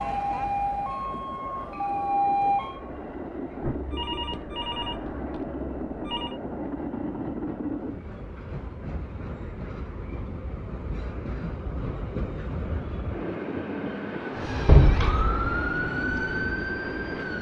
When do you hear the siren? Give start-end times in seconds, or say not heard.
0.0-2.8, 14.3-17.3.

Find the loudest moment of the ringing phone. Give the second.
15 s.